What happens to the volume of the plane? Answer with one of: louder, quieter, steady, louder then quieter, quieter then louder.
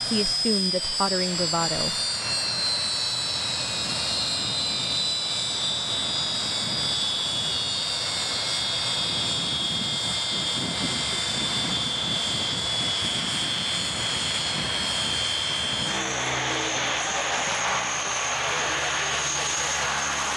steady.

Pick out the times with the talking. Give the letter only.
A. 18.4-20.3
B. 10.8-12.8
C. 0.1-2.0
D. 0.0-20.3
C.